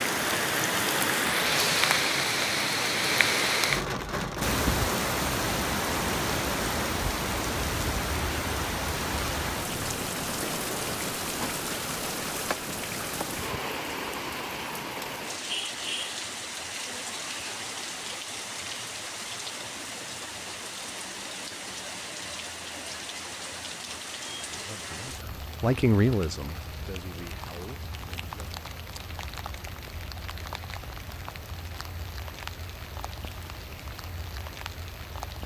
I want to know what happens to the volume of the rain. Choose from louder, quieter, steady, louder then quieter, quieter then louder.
quieter.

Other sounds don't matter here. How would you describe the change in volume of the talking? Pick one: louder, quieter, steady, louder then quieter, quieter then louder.
louder then quieter.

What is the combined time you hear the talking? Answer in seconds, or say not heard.
4 s.